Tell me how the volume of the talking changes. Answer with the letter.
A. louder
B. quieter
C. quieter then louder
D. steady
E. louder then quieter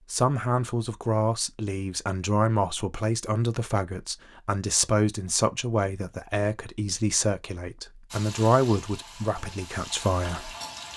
D.